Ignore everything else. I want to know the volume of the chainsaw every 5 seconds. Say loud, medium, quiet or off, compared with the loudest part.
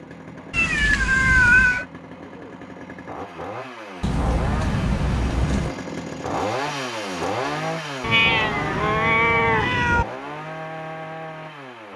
medium, loud, medium.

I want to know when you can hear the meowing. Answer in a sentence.
You can hear the meowing from 0.5 to 1.9 s, from 4.0 to 5.8 s and from 8.0 to 10.1 s.